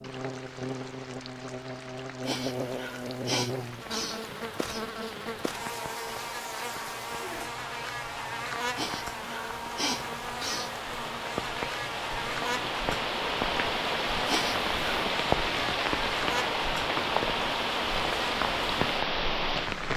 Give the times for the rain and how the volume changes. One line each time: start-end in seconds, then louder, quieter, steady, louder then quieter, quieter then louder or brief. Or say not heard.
0.0-19.9 louder.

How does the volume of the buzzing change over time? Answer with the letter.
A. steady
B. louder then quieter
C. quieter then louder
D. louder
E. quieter
A.